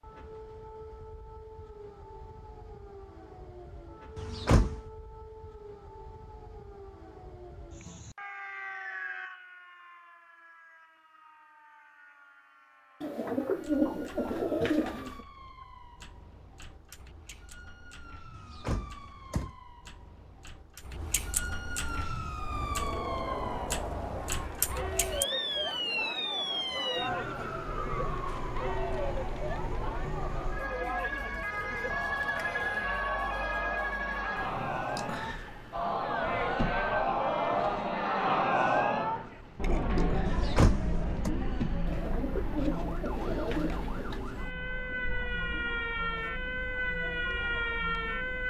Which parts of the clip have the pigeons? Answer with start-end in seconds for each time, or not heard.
13.0-15.2, 41.9-44.2.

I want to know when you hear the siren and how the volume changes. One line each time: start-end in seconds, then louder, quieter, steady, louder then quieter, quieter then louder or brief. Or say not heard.
0.0-48.4 quieter then louder.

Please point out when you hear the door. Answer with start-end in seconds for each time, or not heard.
4.2-4.8, 18.4-19.6, 40.2-41.3.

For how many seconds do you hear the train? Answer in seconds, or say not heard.
not heard.